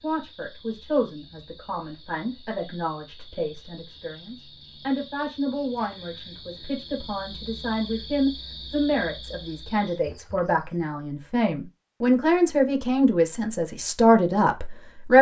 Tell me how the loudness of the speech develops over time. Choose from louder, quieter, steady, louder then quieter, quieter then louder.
louder.